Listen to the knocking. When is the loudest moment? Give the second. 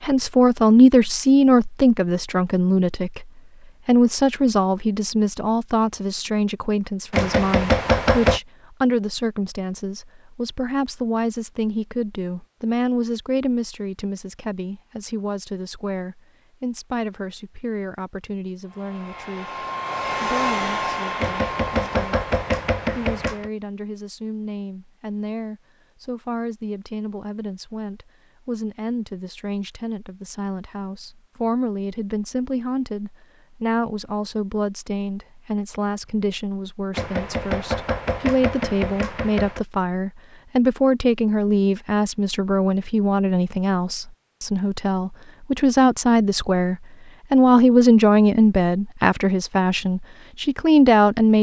8 s.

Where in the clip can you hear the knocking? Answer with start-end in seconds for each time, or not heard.
7.1-8.4, 21.1-23.5, 36.9-39.6.